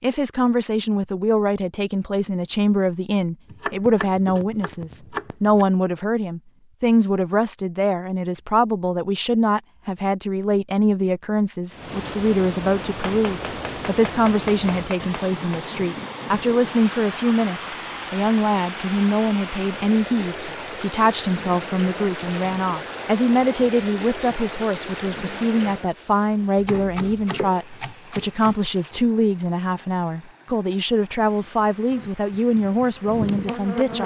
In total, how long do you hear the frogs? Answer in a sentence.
You can't hear the frogs here.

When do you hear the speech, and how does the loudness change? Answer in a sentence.
You can hear the speech from 0.0 to 34.0 s, at a steady volume.